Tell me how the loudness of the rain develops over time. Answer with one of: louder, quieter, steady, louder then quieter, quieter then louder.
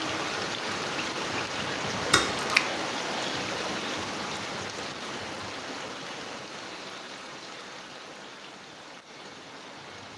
quieter.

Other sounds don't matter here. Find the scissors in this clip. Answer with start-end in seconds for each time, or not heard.
2.0-2.6.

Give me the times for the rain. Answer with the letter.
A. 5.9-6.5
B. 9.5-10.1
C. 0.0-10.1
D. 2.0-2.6
C.